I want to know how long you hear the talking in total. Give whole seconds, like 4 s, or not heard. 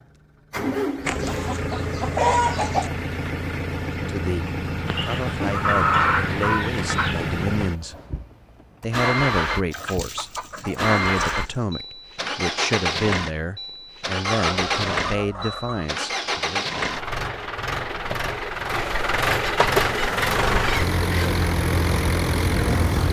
12 s.